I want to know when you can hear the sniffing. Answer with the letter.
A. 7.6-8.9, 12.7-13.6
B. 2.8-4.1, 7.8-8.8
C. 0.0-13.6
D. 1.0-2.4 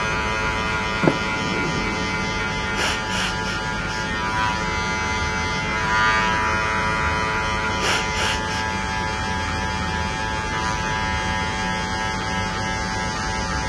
B.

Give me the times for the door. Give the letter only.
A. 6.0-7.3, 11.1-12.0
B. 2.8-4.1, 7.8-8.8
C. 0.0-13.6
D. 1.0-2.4
D.